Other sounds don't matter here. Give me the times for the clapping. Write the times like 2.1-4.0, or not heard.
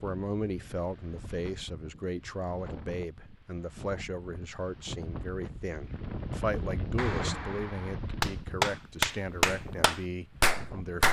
7.0-11.0.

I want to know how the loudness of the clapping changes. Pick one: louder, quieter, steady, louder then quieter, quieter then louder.
louder.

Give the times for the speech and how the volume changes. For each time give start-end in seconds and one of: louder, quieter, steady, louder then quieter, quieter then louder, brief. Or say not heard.
0.0-11.0 steady.